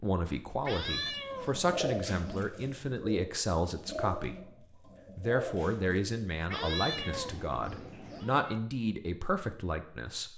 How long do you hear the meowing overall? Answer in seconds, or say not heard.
4 s.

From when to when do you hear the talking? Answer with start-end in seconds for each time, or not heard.
0.0-4.3, 5.2-10.3.